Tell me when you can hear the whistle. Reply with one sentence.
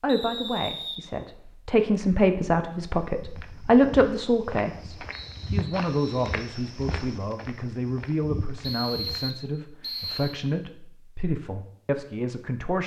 You can hear the whistle from 0.1 to 1.4 s, from 5.1 to 6.4 s and from 8.6 to 10.4 s.